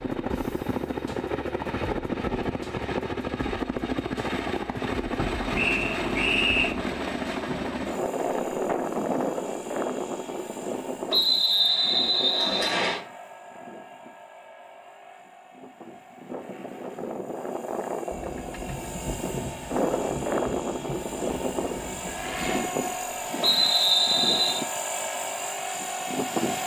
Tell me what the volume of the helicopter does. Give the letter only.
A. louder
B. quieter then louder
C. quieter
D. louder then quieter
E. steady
B.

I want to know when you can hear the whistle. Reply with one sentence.
The whistle can be heard from 5.5 to 6.8 s, from 11.1 to 13.0 s and from 23.4 to 24.6 s.